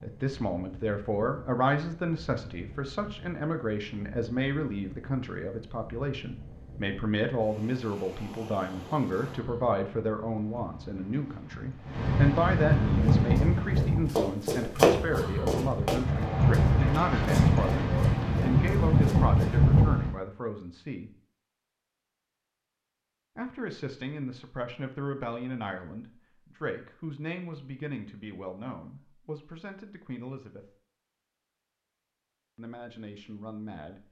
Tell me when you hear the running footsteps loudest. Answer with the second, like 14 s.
15 s.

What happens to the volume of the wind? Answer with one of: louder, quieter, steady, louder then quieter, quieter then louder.
louder.